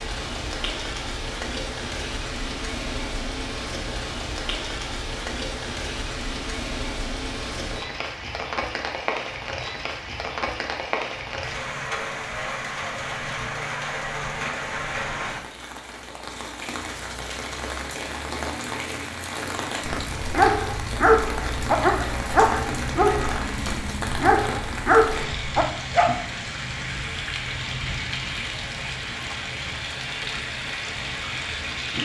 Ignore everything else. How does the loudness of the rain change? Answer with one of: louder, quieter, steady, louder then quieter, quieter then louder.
steady.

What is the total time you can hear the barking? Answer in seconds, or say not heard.
6 s.